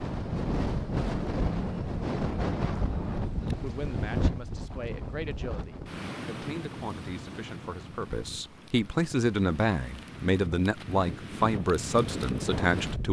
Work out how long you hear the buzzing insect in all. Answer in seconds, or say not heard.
not heard.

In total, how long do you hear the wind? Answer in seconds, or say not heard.
13 s.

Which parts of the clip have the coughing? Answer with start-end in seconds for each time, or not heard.
not heard.